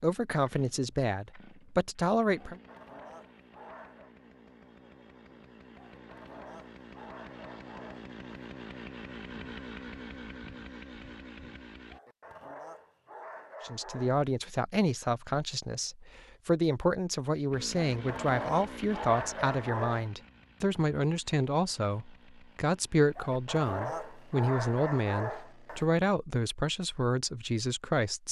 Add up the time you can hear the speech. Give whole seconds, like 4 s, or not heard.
17 s.